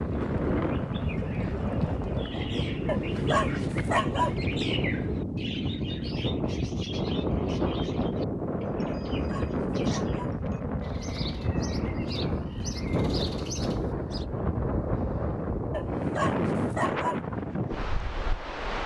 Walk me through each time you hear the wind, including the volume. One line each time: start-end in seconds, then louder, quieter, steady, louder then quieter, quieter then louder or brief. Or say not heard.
0.0-18.8 steady.